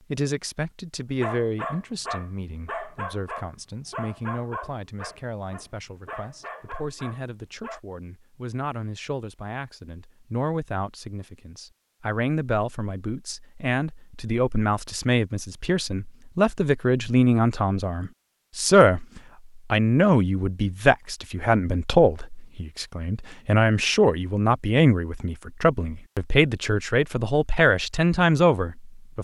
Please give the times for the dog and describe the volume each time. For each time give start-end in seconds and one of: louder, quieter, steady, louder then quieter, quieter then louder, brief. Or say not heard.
1.2-7.8 quieter.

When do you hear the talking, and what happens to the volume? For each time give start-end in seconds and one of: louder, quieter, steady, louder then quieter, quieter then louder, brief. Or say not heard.
0.1-29.2 louder.